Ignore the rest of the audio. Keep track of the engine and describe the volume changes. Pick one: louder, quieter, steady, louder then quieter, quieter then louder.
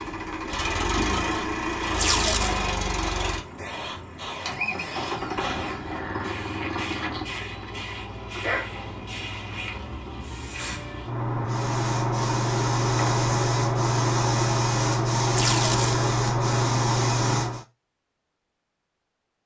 quieter.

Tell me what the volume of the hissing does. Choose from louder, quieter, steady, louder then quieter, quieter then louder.
louder.